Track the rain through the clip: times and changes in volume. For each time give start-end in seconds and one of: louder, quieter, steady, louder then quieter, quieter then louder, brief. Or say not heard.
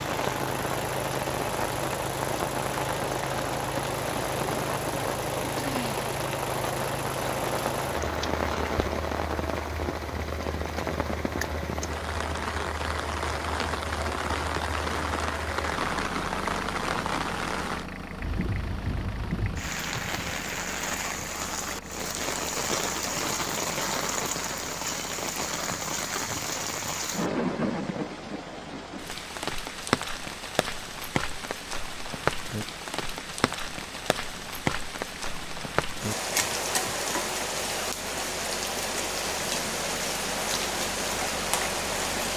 0.0-42.3 steady.